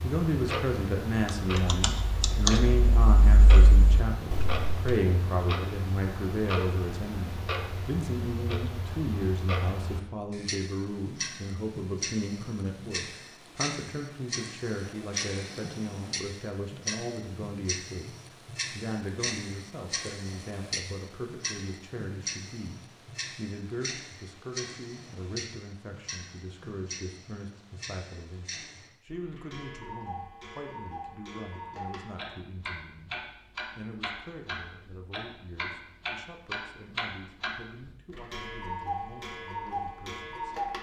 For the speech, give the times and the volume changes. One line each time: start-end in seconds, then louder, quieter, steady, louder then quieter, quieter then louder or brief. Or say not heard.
0.0-18.1 quieter
18.8-40.6 quieter.